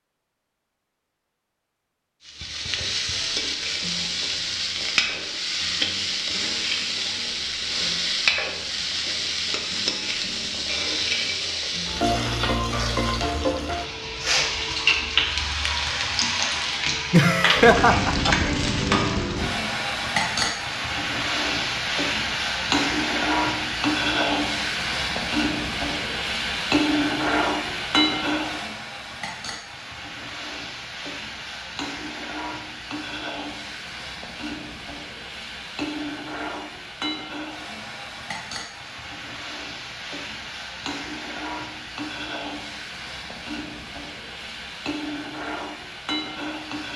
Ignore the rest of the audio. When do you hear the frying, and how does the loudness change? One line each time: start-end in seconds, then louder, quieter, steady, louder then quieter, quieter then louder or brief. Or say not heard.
2.2-46.9 quieter.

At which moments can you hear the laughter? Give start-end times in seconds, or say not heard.
17.1-18.4.